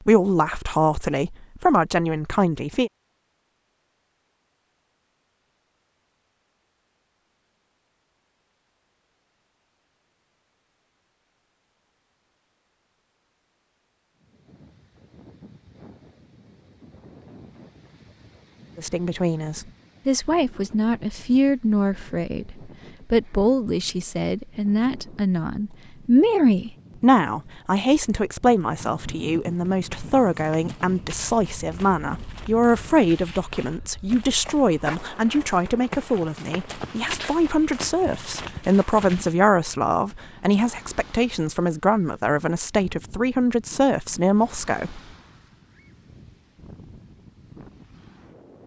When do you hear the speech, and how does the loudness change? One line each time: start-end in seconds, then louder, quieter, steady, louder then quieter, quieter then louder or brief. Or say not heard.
0.1-2.9 brief
18.8-45.0 steady.